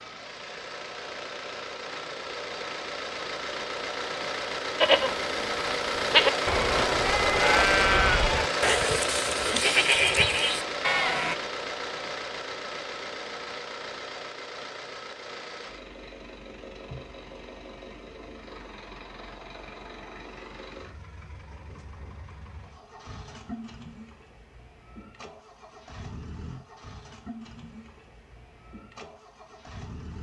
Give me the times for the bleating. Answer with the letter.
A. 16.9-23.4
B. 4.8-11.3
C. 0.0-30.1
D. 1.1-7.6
B.